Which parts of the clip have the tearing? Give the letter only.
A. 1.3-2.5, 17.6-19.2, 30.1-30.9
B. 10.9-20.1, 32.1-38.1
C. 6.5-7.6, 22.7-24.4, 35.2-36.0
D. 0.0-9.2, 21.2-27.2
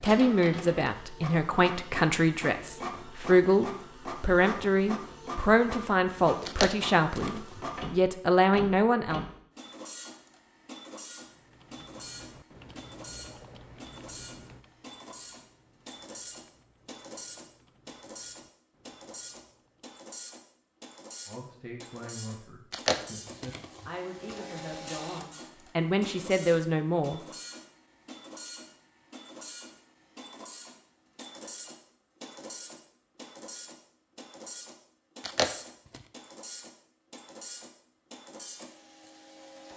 C.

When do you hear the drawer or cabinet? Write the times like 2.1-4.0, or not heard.
not heard.